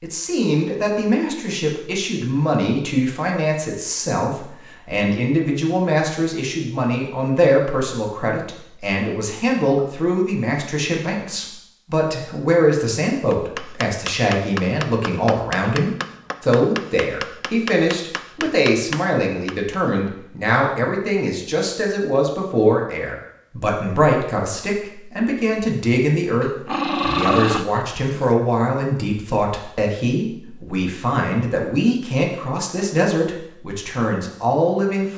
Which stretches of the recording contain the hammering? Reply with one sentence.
The hammering can be heard from 13.3 to 19.8 s.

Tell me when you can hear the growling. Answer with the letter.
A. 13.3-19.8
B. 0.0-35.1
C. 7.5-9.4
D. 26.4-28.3
D.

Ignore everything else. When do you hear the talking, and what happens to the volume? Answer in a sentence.
The talking can be heard from 0.0 to 35.1 s, at a steady volume.